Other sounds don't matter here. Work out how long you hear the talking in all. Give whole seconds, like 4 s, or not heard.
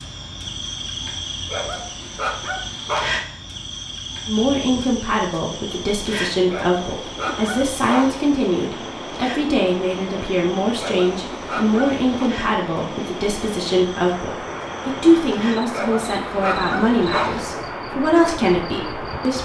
15 s.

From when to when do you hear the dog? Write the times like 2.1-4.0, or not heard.
1.4-3.2, 6.5-8.2, 10.8-12.1, 15.7-17.4.